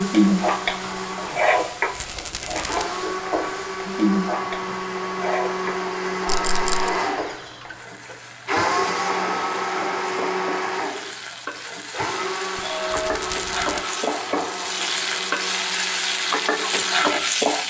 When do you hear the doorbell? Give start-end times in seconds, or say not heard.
12.6-13.2.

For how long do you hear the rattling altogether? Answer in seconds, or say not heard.
3 s.